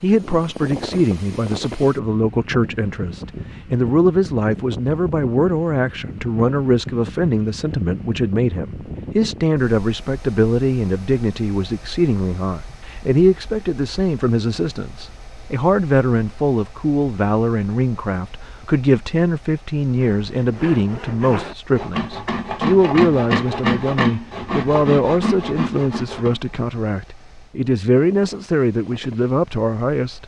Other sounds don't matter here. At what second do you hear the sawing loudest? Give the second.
23 s.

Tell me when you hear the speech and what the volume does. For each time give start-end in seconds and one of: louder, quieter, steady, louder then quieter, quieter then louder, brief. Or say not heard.
0.0-30.2 steady.